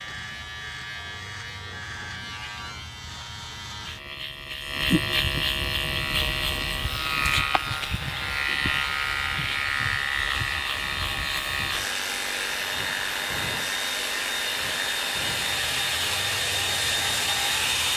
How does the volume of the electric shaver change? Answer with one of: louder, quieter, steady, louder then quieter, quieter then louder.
louder then quieter.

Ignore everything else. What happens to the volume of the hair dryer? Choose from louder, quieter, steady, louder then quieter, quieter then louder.
louder.